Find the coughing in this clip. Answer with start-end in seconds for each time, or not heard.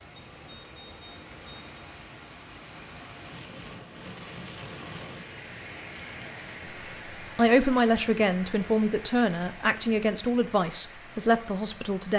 not heard.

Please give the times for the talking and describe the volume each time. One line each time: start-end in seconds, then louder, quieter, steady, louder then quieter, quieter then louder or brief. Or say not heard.
7.3-12.1 steady.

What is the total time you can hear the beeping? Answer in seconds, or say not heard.
2 s.